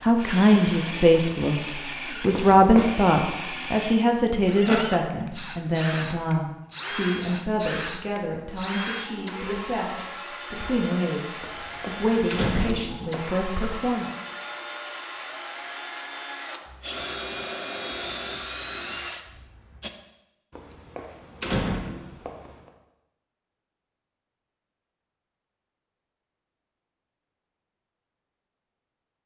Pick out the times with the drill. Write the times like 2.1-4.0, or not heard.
0.0-19.9.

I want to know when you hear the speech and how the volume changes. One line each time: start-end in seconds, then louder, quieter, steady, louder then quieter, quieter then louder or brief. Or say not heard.
0.0-14.1 quieter.